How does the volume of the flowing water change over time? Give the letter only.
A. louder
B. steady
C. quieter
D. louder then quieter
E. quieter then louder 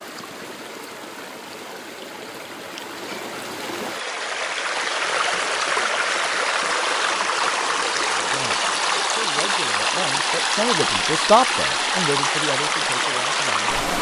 A.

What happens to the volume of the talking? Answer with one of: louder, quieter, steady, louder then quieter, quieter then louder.
louder then quieter.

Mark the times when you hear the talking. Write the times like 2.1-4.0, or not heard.
7.9-13.9.